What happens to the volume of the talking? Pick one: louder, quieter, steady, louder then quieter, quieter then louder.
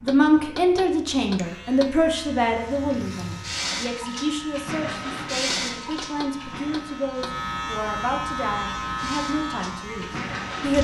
quieter.